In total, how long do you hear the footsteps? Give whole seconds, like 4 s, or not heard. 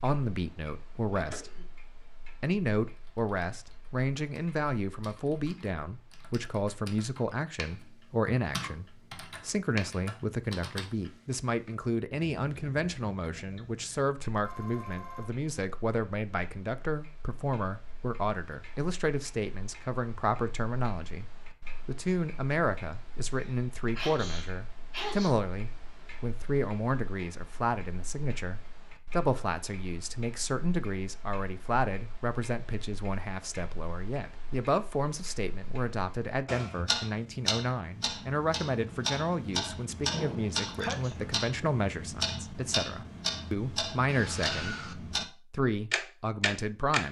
not heard.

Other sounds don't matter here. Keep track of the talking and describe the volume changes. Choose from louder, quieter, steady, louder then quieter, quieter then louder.
steady.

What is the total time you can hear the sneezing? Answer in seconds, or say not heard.
4 s.